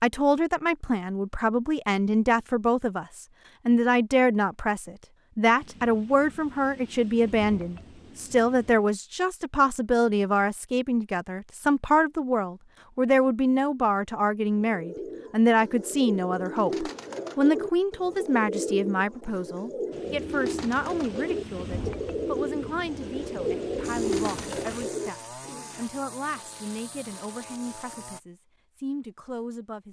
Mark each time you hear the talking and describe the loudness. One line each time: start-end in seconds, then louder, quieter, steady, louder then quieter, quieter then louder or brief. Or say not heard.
0.0-29.8 quieter.